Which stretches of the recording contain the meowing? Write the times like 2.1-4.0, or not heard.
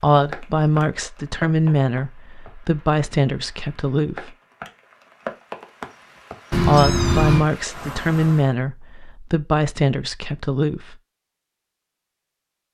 6.5-7.5.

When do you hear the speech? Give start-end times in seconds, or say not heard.
0.0-4.3, 6.7-10.9.